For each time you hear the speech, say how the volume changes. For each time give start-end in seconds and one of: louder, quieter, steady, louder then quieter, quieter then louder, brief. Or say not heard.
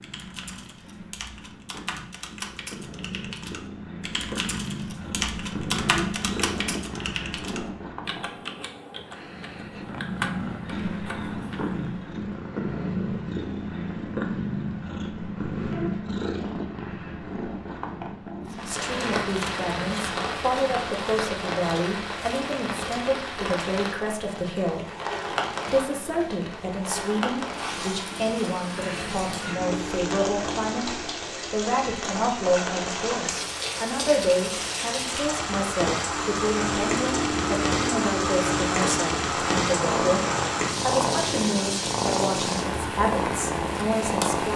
18.5-24.9 steady
25.6-44.5 steady.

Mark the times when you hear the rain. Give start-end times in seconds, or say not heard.
18.4-44.5.